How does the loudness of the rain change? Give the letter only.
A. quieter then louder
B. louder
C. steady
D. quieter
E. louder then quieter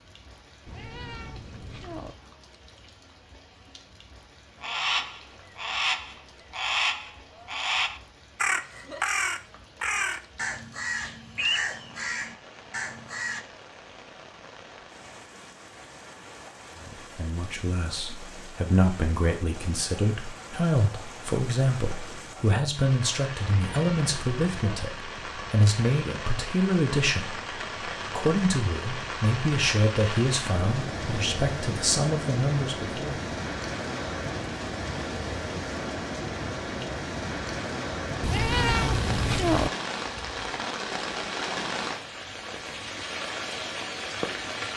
B.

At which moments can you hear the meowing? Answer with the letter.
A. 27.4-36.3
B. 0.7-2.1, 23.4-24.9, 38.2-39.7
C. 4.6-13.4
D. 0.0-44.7
B.